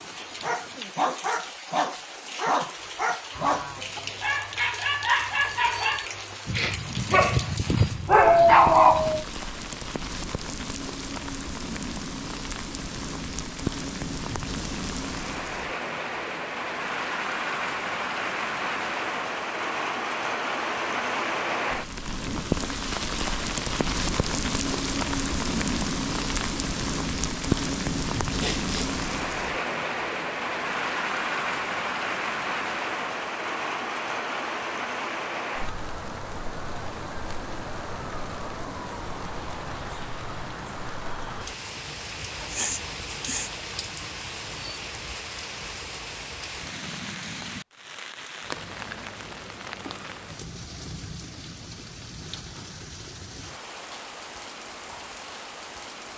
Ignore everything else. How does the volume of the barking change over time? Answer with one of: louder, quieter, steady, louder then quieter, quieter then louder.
louder.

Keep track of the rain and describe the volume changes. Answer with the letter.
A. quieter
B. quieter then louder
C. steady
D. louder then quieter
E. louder
D.